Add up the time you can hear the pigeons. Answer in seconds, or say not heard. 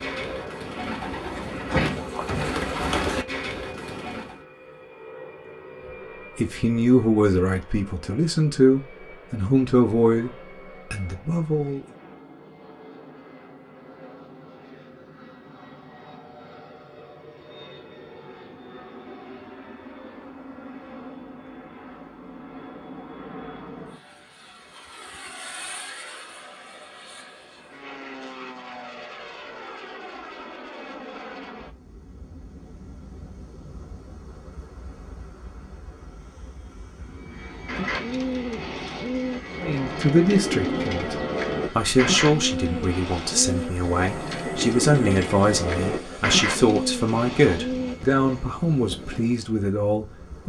15 s.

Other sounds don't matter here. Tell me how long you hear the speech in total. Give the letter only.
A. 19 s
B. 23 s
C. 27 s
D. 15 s
D.